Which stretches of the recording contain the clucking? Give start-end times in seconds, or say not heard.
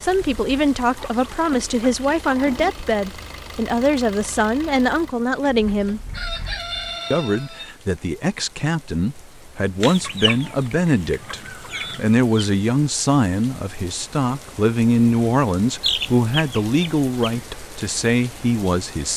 0.1-2.8, 6.1-7.7, 9.8-12.4, 15.8-17.4.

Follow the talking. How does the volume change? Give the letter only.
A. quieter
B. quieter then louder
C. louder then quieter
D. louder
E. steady
E.